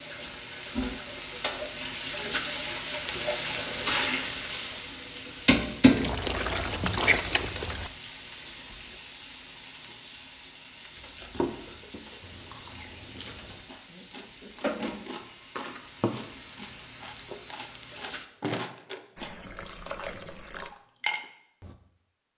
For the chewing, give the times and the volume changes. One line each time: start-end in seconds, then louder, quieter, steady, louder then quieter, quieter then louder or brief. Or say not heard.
11.0-21.8 quieter then louder.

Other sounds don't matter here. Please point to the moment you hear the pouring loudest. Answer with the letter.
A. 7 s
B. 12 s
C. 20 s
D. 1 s
A.